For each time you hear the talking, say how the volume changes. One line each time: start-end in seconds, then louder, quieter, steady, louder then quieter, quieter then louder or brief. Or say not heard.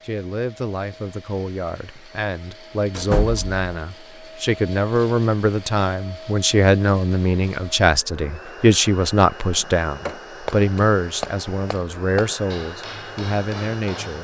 0.1-14.1 louder then quieter.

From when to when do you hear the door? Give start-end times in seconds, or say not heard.
2.9-3.6.